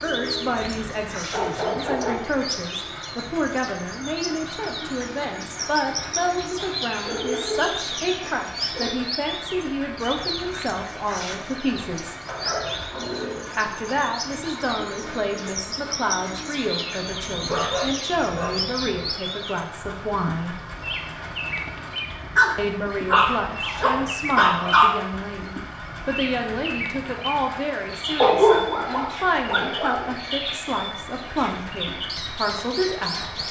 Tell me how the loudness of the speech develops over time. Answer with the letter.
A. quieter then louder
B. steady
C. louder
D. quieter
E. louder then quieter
B.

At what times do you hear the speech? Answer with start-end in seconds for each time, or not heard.
0.0-12.2, 13.6-20.6, 22.6-33.2.